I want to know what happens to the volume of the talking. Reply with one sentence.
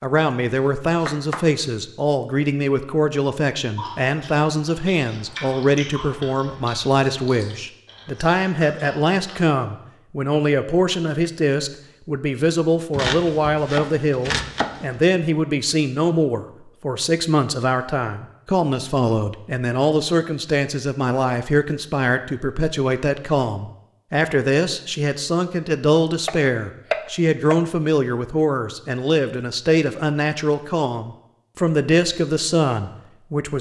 The volume of the talking stays about the same.